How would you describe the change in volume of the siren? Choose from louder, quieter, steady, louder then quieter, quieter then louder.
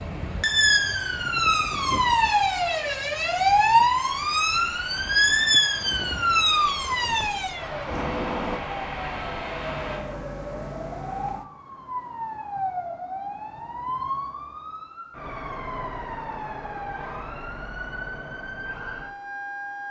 quieter.